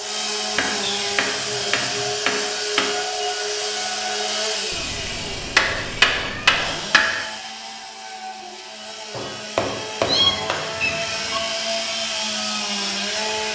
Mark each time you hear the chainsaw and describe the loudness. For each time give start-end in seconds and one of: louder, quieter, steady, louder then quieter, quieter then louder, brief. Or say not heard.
0.0-13.5 quieter then louder.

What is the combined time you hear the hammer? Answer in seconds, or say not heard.
6 s.